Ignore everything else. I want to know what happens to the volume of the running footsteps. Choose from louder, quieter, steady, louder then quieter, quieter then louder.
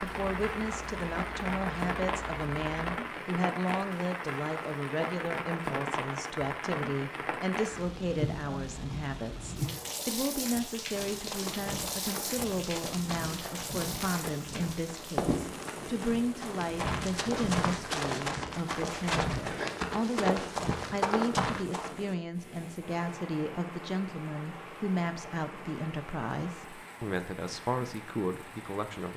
louder.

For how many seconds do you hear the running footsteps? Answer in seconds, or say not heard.
11 s.